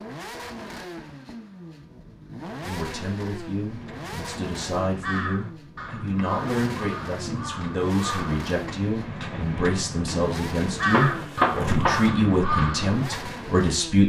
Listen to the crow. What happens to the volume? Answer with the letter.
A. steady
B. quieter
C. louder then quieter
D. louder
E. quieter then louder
D.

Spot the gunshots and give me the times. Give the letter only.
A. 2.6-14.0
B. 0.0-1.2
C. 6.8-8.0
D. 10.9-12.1
D.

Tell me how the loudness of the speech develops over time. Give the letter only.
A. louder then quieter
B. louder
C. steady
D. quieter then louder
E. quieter
B.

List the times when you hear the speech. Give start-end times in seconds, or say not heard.
2.6-14.0.